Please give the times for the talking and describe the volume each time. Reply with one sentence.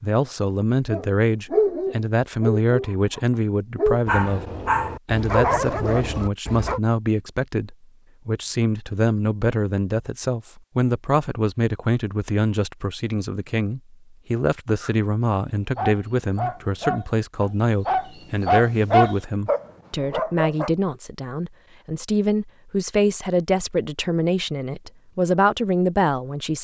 You can hear the talking from 0.0 to 4.5 s, at a steady volume; and from 5.0 to 26.5 s, at a steady volume.